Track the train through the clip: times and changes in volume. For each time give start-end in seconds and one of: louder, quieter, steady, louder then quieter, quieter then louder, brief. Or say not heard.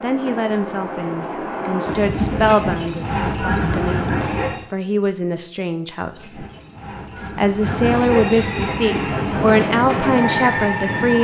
0.0-4.7 louder
6.1-11.1 louder.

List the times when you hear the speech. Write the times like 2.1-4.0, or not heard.
0.0-6.5, 7.3-11.1.